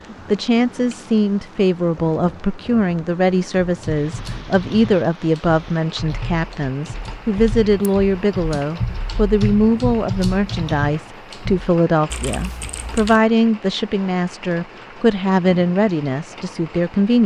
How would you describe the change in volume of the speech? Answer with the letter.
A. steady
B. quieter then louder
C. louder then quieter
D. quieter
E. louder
A.